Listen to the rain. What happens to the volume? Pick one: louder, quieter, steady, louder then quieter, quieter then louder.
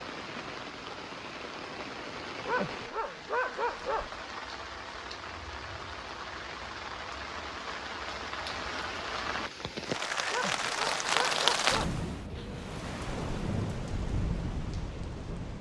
louder then quieter.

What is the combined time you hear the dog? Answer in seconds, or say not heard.
3 s.